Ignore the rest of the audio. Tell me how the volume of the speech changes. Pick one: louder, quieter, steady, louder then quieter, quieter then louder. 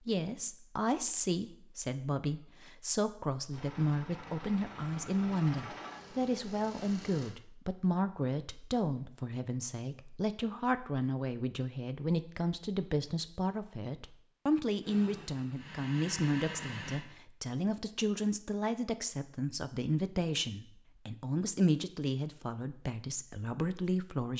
steady.